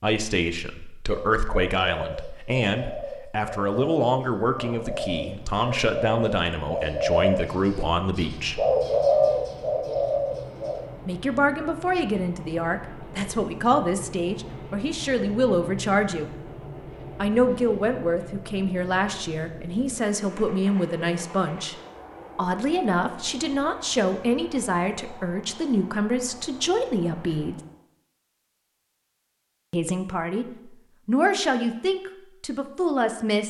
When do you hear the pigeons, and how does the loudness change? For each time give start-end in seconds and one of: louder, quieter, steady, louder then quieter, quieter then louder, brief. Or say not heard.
1.1-10.8 louder.